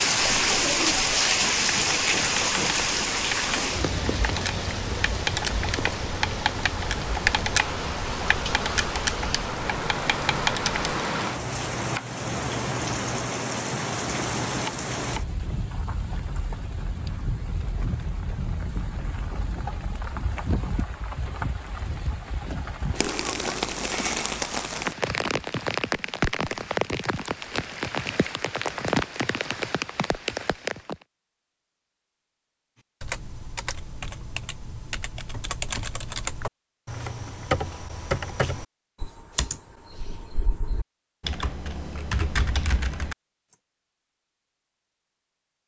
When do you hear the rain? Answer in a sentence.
You can hear the rain from 0.0 to 30.9 s.